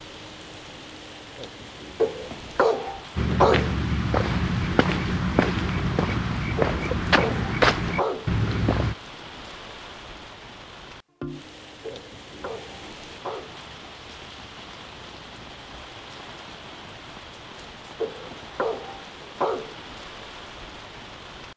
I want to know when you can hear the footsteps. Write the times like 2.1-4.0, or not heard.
3.1-8.9.